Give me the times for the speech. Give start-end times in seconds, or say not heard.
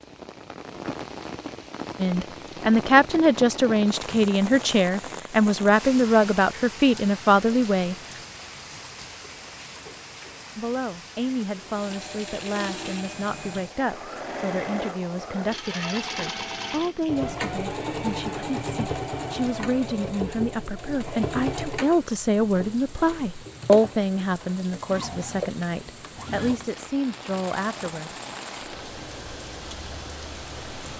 2.0-8.0, 10.6-28.1.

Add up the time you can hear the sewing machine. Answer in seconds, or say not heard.
19 s.